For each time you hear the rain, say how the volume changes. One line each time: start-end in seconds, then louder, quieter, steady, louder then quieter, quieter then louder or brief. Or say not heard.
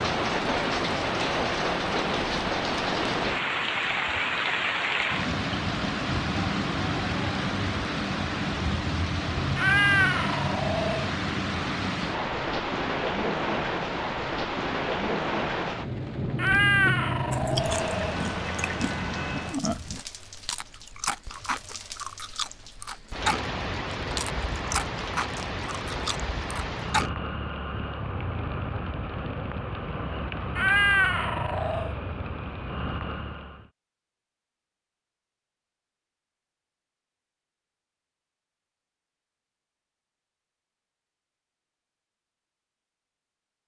0.0-33.7 quieter.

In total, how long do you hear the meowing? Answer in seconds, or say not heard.
5 s.